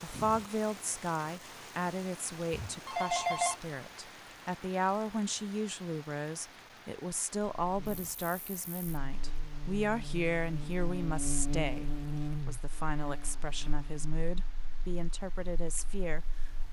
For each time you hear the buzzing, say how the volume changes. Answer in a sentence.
The buzzing can be heard from 7.5 to 16.6 s, getting louder then quieter.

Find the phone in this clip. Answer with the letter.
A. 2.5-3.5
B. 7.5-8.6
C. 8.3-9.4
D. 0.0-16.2
A.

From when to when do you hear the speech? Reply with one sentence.
You can hear the speech from 0.0 to 16.2 s.